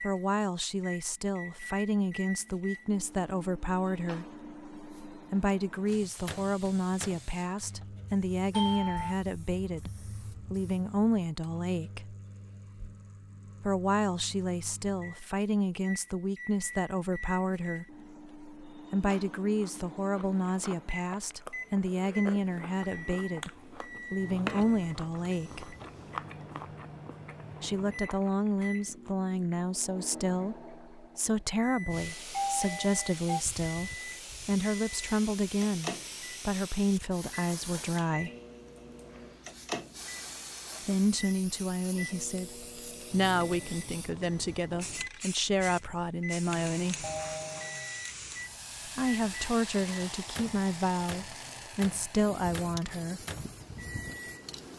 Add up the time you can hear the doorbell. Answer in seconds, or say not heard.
3 s.